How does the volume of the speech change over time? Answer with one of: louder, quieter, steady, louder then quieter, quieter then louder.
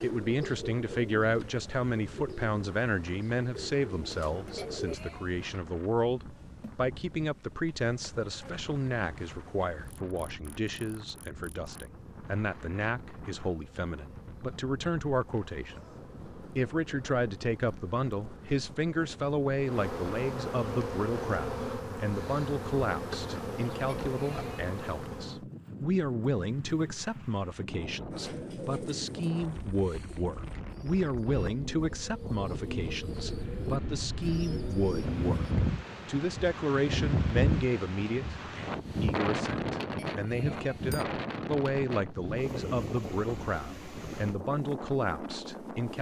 steady.